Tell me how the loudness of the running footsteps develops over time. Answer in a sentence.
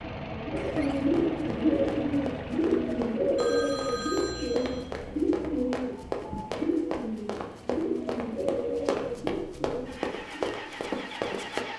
The loudness of the running footsteps goes up.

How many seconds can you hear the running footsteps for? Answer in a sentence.
The running footsteps can be heard for 11 seconds in total.